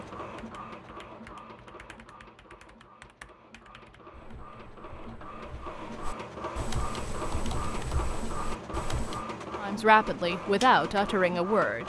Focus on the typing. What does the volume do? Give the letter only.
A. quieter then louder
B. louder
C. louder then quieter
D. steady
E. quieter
B.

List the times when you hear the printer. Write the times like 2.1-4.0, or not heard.
0.0-11.8.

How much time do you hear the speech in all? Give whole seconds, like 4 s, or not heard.
2 s.